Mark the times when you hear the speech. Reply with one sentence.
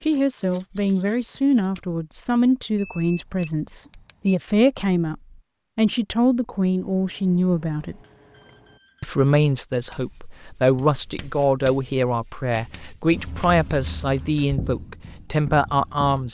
The speech can be heard from 0.0 to 8.0 s and from 9.0 to 16.2 s.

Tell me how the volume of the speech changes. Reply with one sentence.
The loudness of the speech stays about the same.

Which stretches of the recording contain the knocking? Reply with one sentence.
You can't hear the knocking here.